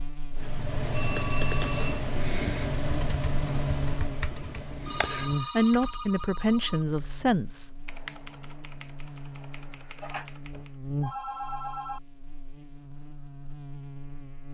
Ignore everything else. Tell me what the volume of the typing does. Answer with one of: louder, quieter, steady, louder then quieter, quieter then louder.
quieter.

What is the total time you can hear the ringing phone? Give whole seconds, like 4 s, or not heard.
5 s.